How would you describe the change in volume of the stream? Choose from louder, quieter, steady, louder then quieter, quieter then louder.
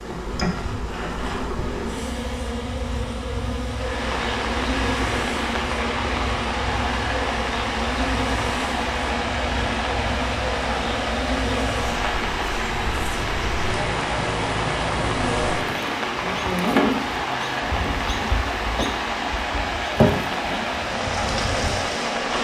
steady.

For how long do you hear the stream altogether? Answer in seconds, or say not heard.
19 s.